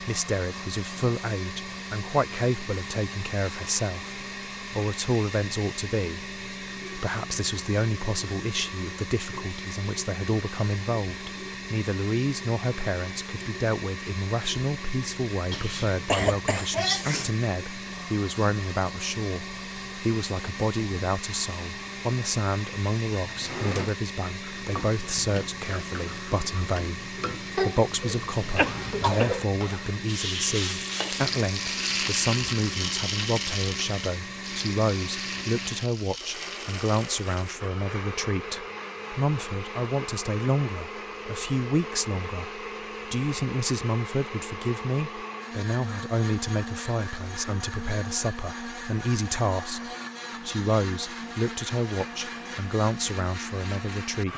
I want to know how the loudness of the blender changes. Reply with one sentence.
The loudness of the blender stays about the same.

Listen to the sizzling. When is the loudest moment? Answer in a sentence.
The volume of the sizzling peaks at 32 seconds.